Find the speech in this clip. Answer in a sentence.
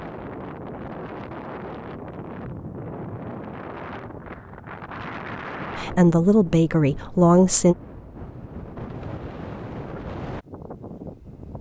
The speech can be heard from 5.8 to 7.8 s.